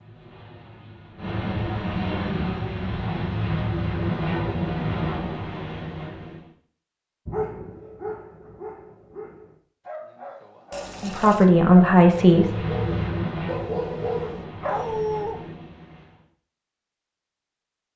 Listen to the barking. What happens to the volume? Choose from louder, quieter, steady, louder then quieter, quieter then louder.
quieter then louder.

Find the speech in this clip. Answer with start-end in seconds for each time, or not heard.
11.0-12.6.